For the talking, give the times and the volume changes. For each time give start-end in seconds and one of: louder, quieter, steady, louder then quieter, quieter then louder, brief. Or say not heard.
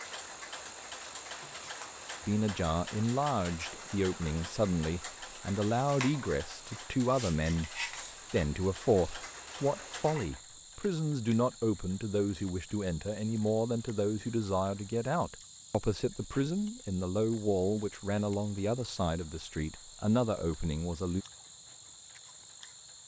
2.2-21.2 steady.